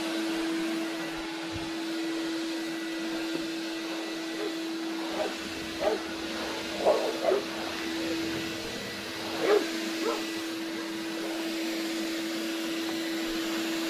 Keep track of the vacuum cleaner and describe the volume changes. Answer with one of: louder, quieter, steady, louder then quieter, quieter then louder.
steady.